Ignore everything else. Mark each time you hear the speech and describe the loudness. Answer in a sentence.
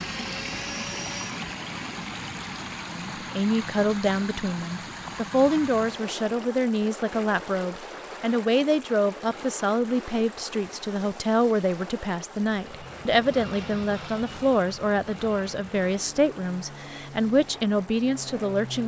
The speech can be heard from 2.9 to 18.8 s, at a steady volume.